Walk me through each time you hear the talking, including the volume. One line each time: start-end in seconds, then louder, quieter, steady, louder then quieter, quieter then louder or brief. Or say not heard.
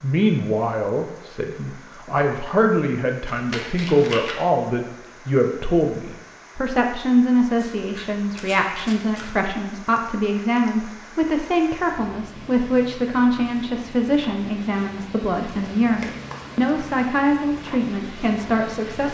0.0-19.0 steady.